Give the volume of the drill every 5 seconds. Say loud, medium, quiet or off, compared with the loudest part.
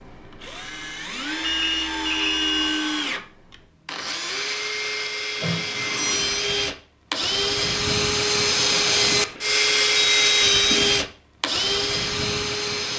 medium, loud, loud.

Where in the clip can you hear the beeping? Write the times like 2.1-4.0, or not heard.
1.4-2.9, 5.4-6.5, 9.9-11.1.